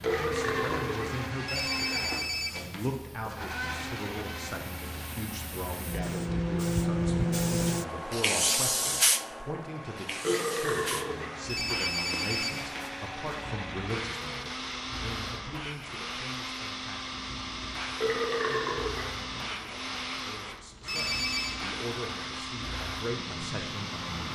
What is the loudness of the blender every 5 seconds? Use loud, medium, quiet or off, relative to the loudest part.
loud, medium, loud, loud, loud.